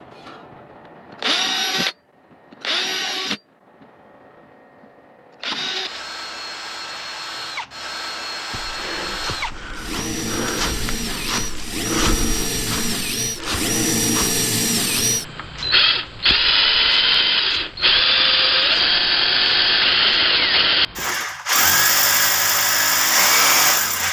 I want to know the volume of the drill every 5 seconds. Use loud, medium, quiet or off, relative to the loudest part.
medium, quiet, medium, loud, loud.